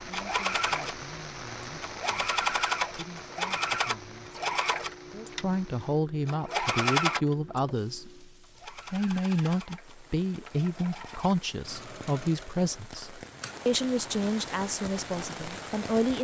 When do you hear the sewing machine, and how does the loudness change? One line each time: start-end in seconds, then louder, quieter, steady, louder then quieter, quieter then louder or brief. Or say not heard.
0.0-16.2 quieter.